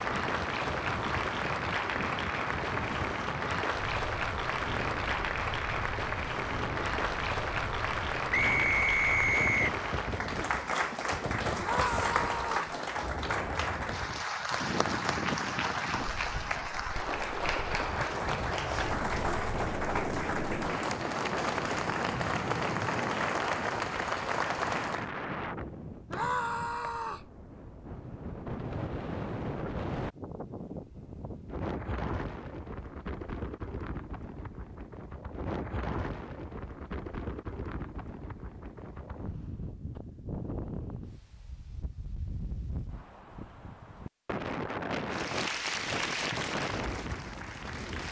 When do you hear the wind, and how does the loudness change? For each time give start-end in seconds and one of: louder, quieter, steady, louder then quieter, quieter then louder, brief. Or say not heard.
0.0-48.0 steady.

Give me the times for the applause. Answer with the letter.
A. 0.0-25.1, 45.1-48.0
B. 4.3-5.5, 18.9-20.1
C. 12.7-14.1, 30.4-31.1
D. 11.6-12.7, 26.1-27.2
A.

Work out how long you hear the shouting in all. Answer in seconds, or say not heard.
2 s.